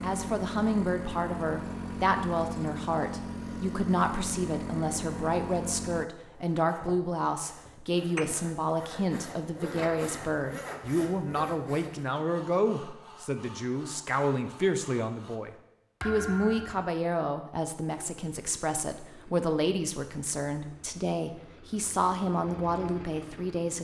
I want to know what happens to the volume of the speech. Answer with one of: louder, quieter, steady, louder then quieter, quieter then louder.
steady.